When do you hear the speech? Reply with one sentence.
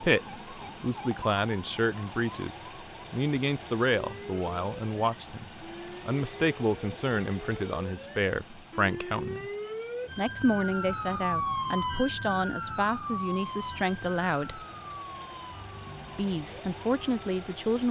You can hear the speech from 0.0 to 9.4 s, from 10.2 to 14.6 s and from 16.1 to 17.8 s.